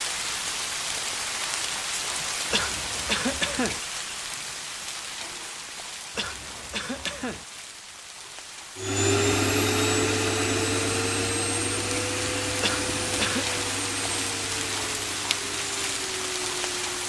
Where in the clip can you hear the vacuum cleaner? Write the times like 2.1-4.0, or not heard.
8.8-17.0.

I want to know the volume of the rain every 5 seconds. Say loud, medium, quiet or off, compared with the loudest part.
loud, medium, loud, loud.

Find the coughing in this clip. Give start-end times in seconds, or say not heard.
2.5-3.8, 6.2-7.5, 12.6-13.6.